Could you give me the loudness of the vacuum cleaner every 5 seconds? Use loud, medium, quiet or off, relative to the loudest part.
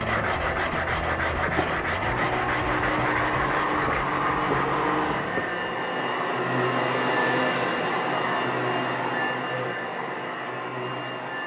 loud, loud, medium.